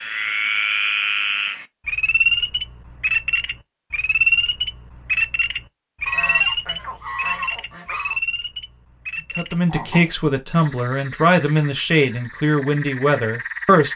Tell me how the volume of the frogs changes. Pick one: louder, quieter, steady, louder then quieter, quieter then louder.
quieter.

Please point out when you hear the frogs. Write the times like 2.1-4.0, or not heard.
0.0-13.9.